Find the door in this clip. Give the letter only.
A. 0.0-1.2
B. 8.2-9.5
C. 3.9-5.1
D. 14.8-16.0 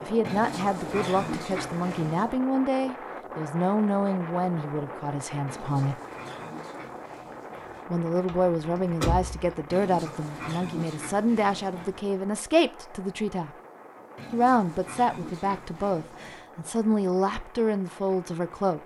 B.